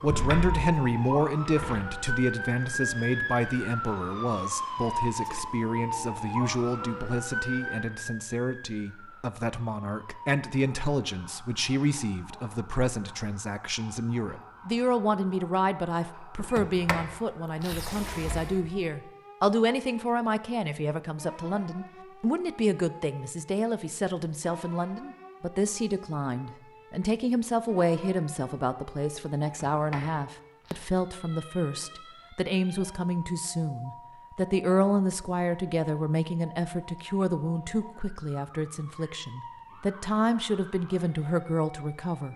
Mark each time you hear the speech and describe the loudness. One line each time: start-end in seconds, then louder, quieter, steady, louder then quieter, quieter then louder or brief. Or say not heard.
0.0-42.3 steady.